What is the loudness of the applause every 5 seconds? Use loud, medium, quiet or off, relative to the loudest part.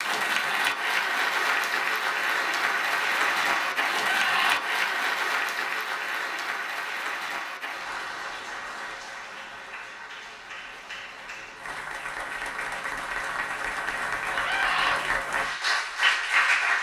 loud, medium, medium, loud.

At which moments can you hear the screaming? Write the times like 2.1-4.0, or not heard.
3.9-4.6, 14.3-15.0.